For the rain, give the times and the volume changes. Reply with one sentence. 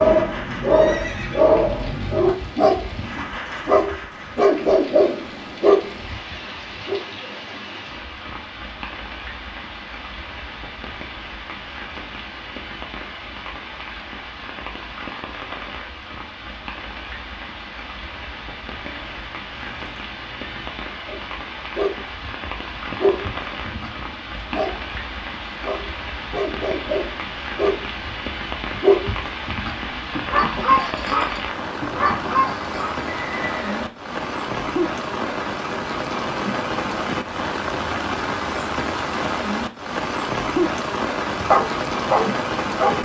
The rain can be heard from 0.0 to 43.0 s, getting louder.